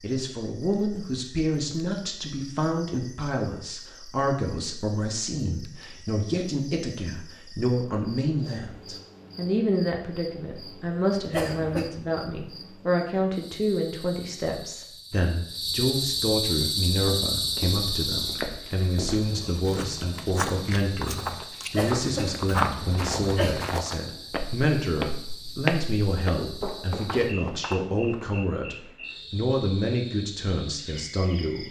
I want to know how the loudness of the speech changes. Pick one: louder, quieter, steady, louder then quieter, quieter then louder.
steady.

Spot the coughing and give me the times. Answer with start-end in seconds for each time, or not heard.
11.3-11.9, 21.8-23.7.